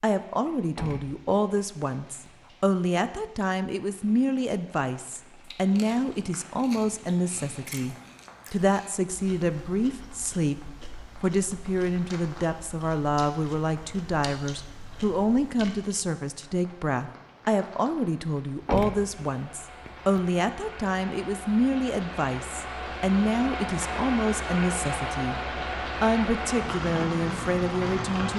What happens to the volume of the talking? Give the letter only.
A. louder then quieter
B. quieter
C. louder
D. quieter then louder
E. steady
E.